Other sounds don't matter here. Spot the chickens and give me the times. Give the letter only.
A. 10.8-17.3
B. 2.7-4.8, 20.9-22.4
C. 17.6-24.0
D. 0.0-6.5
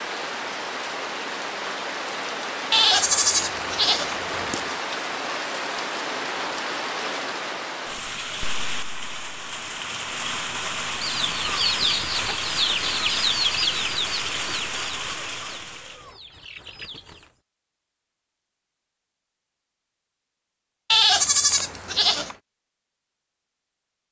A.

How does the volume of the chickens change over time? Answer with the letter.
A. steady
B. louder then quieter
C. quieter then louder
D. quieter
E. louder
D.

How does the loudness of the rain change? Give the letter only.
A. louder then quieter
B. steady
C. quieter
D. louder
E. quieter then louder
B.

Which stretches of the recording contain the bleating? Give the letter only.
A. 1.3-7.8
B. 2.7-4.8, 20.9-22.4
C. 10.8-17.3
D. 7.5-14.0
B.